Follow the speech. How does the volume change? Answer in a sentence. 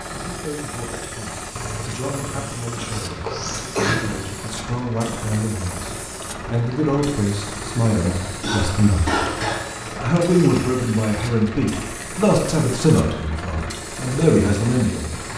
The loudness of the speech goes up.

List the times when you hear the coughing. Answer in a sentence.
The coughing can be heard from 2.8 to 4.0 s and from 8.4 to 9.7 s.